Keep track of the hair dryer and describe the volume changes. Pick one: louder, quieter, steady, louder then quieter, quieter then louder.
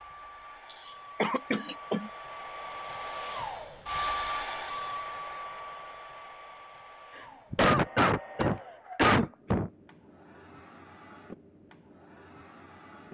louder then quieter.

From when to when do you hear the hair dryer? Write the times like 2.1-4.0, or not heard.
0.0-13.0.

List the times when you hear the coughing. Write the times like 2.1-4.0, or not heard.
1.1-2.1, 7.2-9.7.